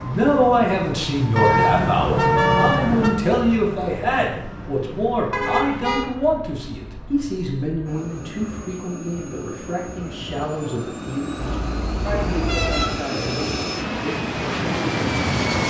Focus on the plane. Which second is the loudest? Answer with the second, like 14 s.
15 s.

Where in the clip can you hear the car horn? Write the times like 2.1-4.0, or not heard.
1.4-3.1, 5.3-6.1, 11.3-12.9.